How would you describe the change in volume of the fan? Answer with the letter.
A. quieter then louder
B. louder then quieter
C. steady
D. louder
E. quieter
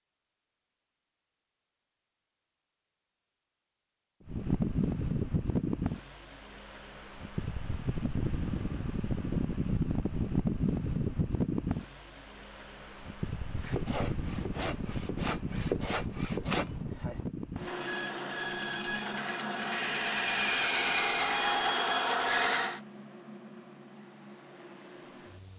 E.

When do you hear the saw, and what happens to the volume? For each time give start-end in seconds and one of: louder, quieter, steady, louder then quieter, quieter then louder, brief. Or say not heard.
13.4-22.8 louder.